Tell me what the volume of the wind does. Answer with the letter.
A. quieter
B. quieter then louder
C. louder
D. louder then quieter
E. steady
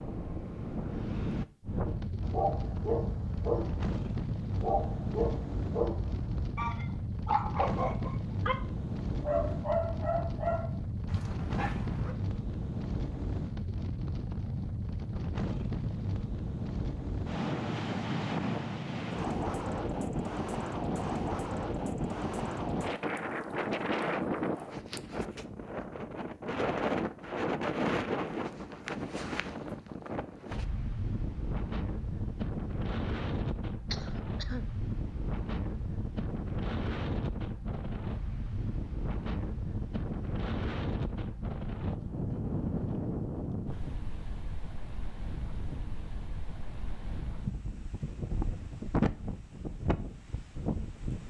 E.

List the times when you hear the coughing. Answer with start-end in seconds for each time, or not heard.
33.9-34.6.